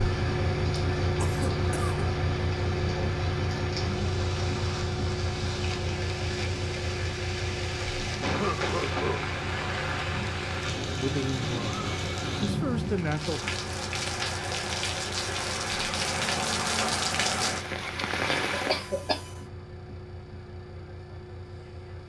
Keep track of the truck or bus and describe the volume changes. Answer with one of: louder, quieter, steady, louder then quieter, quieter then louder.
quieter.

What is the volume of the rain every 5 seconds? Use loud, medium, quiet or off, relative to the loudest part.
medium, medium, loud, loud, off.